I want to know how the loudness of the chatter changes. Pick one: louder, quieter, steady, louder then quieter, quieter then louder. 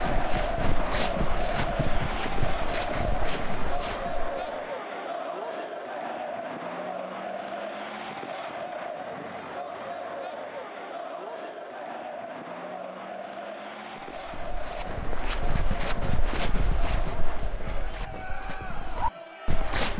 quieter.